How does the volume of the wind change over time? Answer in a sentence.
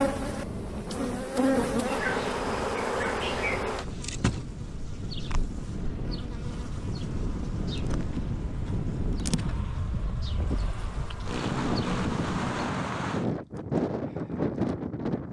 The volume of the wind goes up.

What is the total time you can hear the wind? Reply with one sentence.
The wind can be heard for 15 seconds in total.